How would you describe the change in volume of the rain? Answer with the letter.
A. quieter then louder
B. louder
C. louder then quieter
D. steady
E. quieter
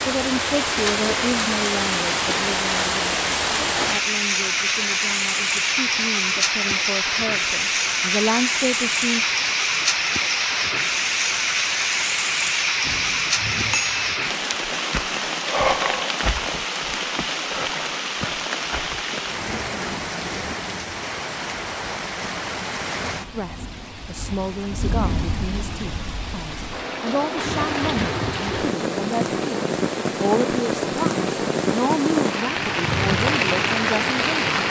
A.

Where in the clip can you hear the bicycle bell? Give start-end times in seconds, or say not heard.
12.8-14.2.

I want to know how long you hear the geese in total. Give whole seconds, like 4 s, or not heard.
not heard.